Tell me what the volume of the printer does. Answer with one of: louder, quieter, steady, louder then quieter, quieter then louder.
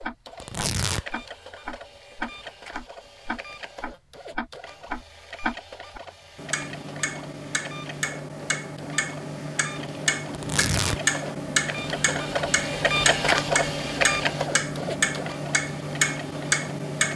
louder.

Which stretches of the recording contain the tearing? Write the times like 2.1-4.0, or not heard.
0.4-1.1, 10.3-11.0.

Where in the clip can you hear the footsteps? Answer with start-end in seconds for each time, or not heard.
not heard.